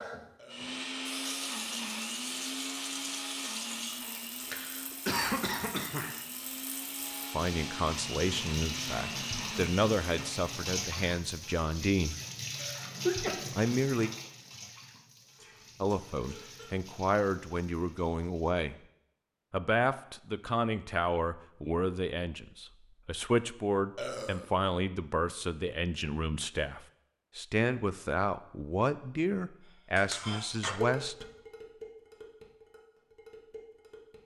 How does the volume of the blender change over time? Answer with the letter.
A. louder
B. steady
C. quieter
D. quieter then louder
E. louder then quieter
D.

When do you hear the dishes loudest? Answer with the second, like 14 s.
31 s.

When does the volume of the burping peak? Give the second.
24 s.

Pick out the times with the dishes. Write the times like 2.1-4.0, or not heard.
29.6-34.2.